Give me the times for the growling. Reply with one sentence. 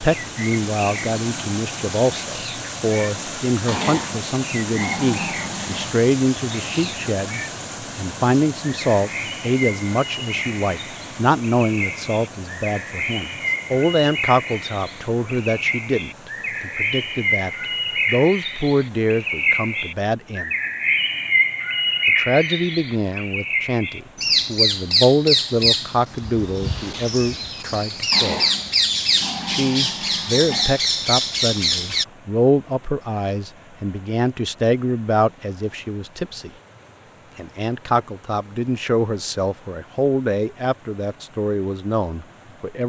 The growling can be heard from 3.6 to 6.0 s and from 28.1 to 30.8 s.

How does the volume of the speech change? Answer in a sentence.
The loudness of the speech stays about the same.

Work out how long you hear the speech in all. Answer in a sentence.
You can hear the speech for 39 seconds altogether.